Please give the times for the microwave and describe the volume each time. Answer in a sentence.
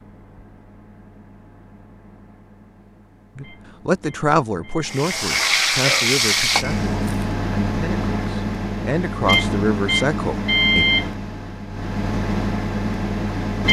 You can hear the microwave from 0.0 to 13.6 s, getting louder.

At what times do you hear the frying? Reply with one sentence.
You can hear the frying from 4.8 to 7.3 s.